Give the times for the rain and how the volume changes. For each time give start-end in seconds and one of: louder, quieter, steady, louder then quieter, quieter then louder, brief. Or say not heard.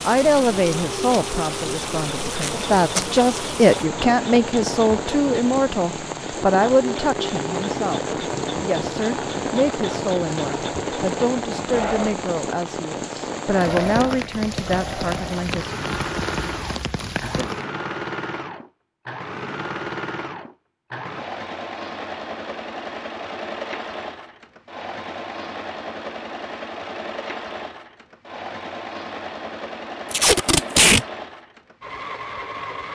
0.0-17.6 steady.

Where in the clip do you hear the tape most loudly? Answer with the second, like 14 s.
31 s.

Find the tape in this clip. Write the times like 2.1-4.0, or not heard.
2.3-3.0, 30.1-31.1.